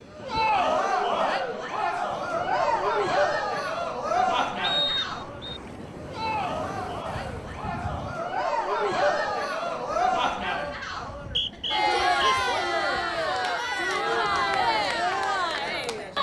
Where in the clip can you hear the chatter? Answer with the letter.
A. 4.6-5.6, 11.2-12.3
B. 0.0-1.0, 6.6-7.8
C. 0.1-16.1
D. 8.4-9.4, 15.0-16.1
C.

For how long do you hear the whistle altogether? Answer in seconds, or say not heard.
2 s.